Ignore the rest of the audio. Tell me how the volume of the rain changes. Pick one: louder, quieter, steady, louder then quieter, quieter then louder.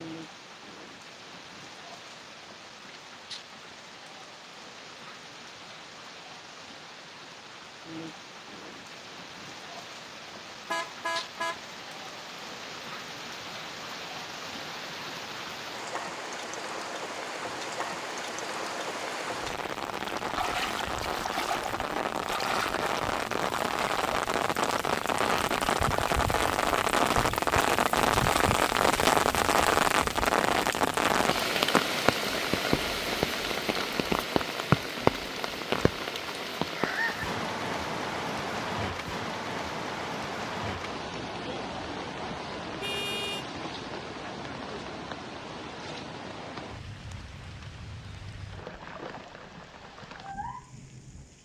louder then quieter.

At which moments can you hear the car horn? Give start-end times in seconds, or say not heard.
10.7-11.6, 42.8-43.5.